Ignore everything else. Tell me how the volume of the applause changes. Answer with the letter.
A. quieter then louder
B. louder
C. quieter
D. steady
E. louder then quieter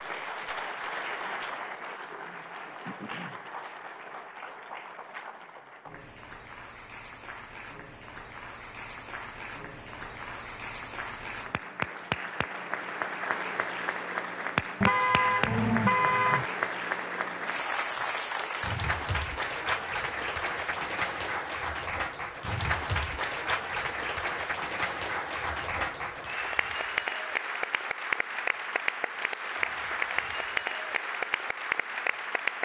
B.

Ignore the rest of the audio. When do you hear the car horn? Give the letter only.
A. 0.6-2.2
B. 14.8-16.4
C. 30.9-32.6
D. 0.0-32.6
B.